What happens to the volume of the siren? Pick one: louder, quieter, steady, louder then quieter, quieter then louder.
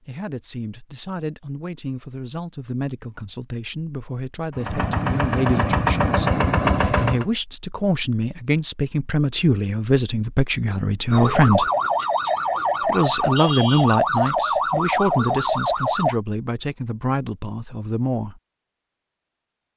steady.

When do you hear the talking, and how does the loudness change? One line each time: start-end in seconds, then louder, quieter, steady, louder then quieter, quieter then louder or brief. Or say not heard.
0.1-11.7 louder
12.8-18.4 quieter.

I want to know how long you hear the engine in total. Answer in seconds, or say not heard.
3 s.